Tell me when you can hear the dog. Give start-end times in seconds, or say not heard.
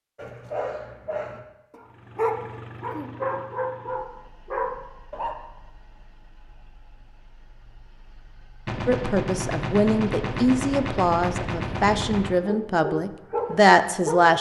0.1-5.3, 12.2-14.3.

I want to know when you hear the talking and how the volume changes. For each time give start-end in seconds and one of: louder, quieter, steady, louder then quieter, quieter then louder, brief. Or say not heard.
8.8-14.3 louder.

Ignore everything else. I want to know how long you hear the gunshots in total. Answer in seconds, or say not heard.
4 s.